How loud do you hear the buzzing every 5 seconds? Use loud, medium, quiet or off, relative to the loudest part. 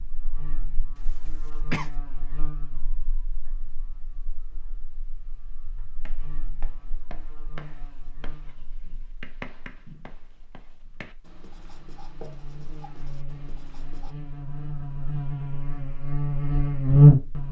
quiet, quiet, quiet, loud.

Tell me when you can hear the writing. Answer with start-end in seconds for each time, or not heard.
6.0-14.2.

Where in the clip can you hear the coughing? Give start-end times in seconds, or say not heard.
0.9-1.9.